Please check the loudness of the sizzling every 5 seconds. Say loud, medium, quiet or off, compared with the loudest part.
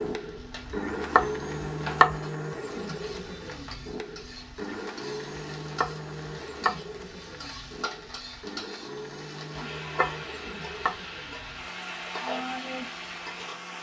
medium, medium, loud.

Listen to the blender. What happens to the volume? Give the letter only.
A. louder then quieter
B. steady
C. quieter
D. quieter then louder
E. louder
C.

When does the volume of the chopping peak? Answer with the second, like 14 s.
2 s.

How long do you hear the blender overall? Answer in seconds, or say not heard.
14 s.